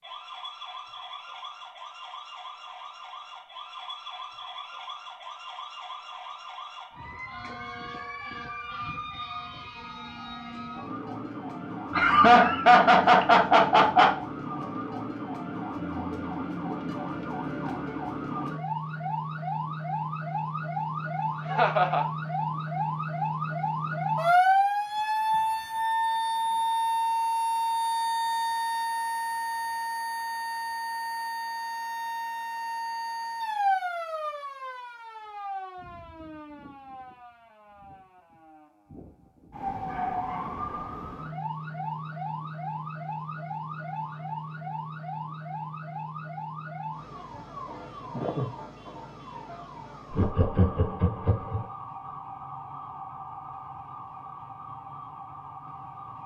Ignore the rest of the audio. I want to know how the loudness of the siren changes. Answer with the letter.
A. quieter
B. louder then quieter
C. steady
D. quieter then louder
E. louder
B.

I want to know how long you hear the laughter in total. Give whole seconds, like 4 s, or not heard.
4 s.